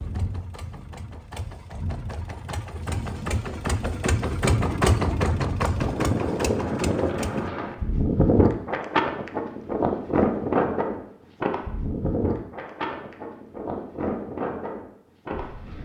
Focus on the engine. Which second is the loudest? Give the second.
5 s.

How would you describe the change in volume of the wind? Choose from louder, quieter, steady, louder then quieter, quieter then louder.
louder then quieter.